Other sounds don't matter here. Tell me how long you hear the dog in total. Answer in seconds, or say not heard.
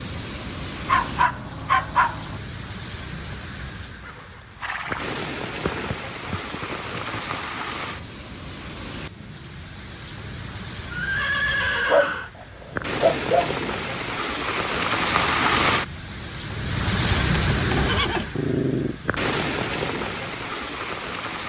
7 s.